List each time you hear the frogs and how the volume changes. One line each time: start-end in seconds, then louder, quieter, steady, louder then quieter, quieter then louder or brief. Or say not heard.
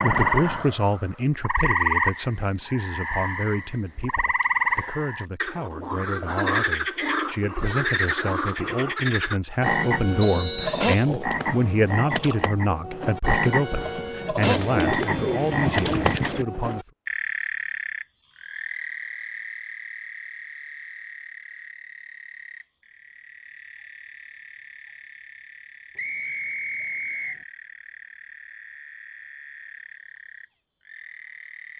0.0-31.7 quieter.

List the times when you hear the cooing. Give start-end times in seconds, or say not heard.
14.4-16.4.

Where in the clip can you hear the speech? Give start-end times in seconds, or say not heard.
0.0-16.9.